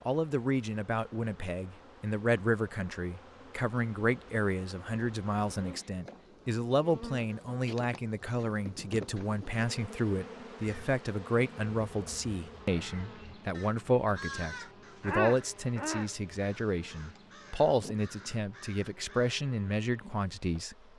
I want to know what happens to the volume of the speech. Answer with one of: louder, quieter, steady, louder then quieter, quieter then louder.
steady.